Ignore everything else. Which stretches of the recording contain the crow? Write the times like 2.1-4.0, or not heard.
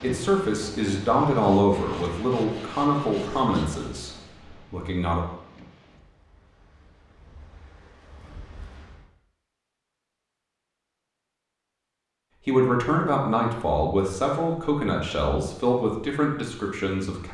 not heard.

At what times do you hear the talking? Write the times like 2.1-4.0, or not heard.
0.0-5.2, 12.4-17.3.